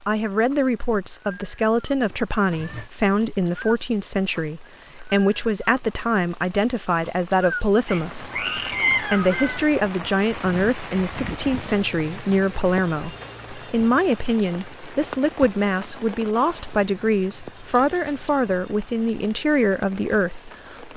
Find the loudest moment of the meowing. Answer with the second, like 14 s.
9 s.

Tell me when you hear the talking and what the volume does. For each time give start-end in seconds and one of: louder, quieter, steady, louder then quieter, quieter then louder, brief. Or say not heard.
0.1-20.9 steady.